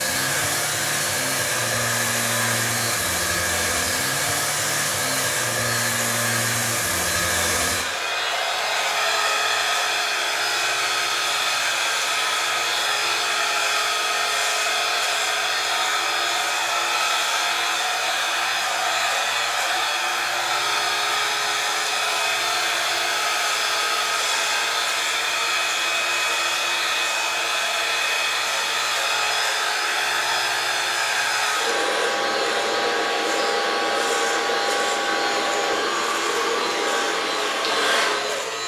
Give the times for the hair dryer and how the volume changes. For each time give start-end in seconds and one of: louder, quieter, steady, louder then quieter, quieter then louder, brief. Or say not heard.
0.0-38.6 steady.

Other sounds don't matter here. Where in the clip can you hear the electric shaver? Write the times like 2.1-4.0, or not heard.
0.0-38.6.